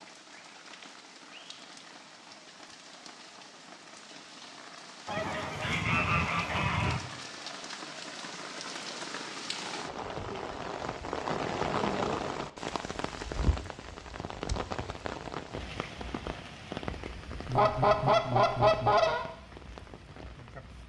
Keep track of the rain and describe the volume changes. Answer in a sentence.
The volume of the rain goes up, then down.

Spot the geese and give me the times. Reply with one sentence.
You can hear the geese from 5.0 to 7.0 s and from 17.4 to 19.2 s.